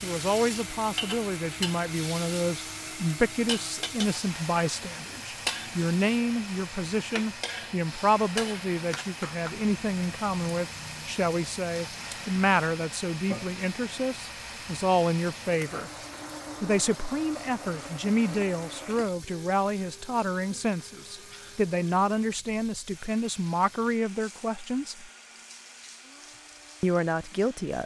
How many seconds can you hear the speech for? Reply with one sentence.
You can hear the speech for 25 seconds altogether.